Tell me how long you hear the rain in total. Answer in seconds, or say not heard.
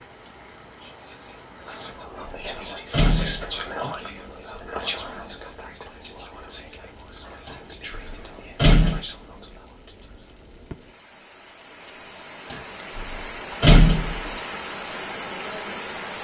16 s.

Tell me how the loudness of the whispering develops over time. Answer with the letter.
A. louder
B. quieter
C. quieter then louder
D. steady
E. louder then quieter
E.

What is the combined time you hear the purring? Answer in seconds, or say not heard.
not heard.